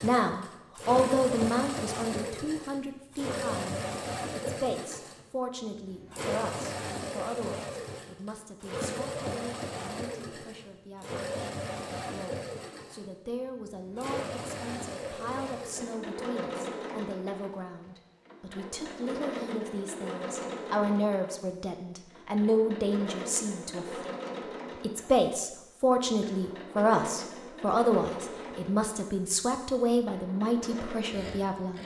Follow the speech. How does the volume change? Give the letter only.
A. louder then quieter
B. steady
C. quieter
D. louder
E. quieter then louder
E.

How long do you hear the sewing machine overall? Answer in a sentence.
You can hear the sewing machine for 32 seconds altogether.